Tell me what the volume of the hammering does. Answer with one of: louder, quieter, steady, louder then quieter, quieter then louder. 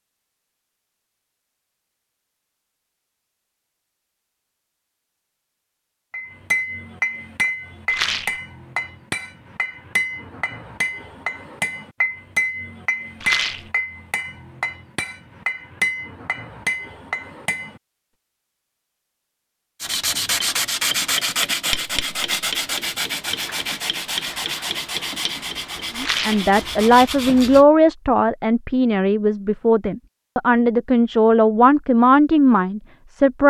steady.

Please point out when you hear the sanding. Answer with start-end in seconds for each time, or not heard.
19.8-27.6.